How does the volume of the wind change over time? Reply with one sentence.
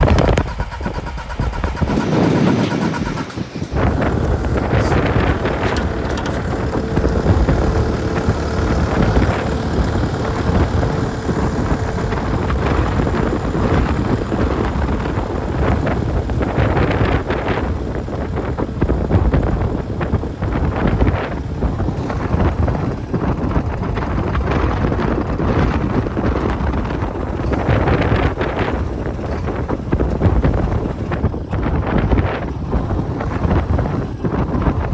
The volume of the wind stays about the same.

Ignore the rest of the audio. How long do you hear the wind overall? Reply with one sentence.
The wind can be heard for 35 seconds in total.